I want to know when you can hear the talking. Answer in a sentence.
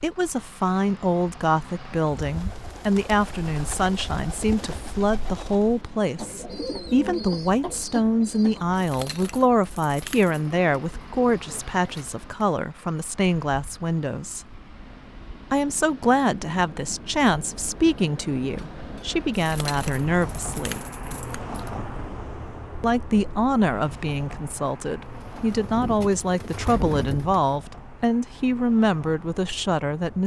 You can hear the talking from 0.0 to 14.4 s, from 15.5 to 20.8 s and from 22.8 to 30.2 s.